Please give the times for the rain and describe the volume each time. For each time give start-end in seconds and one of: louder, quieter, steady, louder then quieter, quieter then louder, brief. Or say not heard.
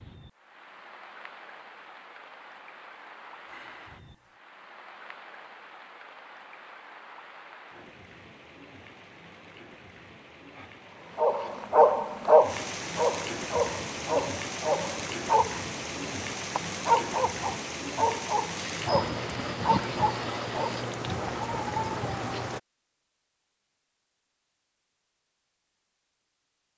0.0-22.6 louder.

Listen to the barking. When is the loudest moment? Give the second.
12 s.